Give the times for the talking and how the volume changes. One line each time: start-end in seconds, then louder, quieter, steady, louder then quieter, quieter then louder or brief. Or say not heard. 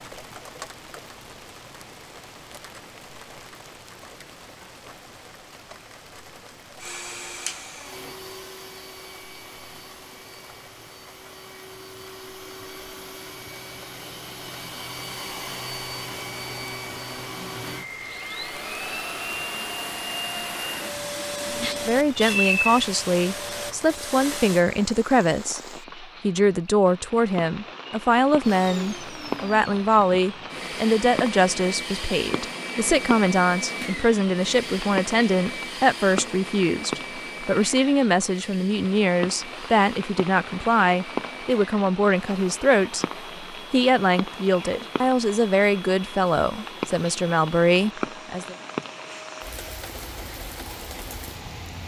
21.9-48.5 steady.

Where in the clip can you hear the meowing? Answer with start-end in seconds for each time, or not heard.
21.5-22.9.